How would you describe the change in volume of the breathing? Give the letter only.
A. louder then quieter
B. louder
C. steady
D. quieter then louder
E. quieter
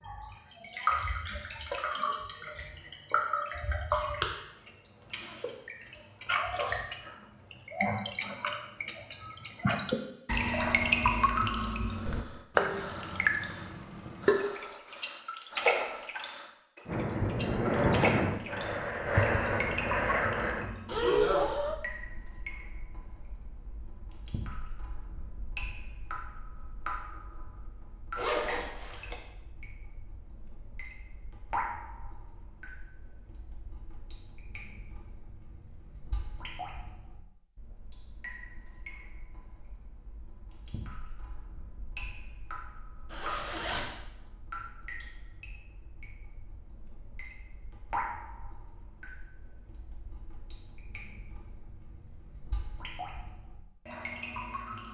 B.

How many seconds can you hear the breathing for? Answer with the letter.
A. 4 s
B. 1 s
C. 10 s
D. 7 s
C.